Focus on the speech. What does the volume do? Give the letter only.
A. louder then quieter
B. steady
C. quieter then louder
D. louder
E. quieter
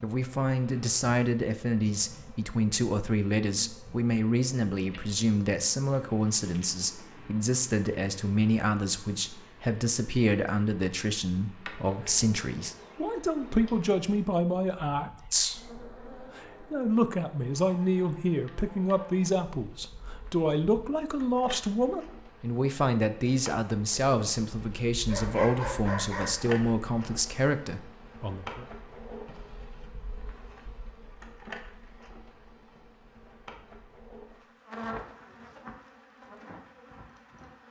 B.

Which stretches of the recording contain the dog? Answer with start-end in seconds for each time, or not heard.
25.1-26.4.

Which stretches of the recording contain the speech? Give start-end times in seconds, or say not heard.
0.0-28.6.